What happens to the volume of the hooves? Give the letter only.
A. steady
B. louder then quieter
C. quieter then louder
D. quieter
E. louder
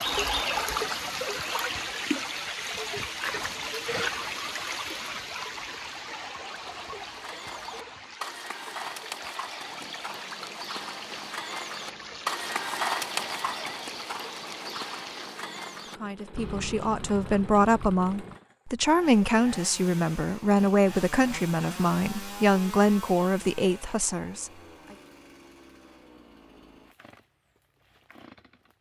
B.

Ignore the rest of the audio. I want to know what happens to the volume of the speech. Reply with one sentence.
The volume of the speech stays about the same.